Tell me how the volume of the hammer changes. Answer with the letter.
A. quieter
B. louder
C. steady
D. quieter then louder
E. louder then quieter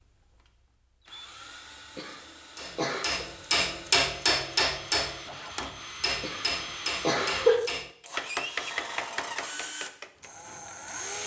A.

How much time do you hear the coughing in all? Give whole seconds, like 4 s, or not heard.
3 s.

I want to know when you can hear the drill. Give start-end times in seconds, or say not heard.
0.0-11.2.